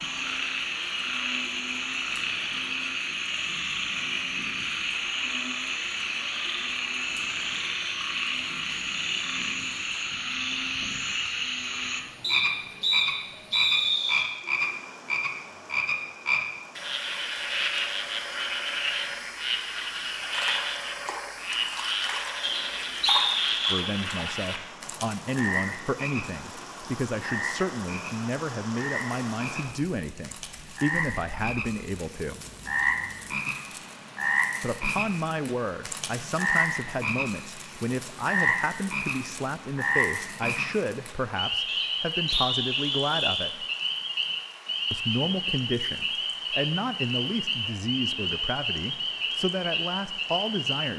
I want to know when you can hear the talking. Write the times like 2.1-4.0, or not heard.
23.7-32.4, 34.6-43.6, 44.9-50.9.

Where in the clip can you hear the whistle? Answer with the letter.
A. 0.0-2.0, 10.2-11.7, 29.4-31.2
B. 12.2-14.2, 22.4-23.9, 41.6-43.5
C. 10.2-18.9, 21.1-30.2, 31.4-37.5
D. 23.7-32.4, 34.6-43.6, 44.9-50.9
B.